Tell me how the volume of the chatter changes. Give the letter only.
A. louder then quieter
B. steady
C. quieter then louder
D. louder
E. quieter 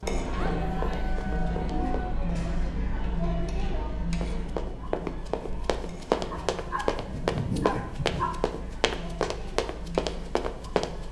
E.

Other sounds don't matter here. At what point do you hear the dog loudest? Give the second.
8 s.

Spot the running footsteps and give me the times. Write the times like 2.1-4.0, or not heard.
0.0-2.3, 4.2-11.0.